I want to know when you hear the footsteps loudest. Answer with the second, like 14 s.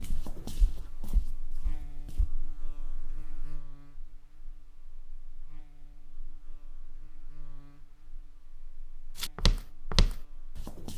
10 s.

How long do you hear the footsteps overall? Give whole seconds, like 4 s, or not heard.
4 s.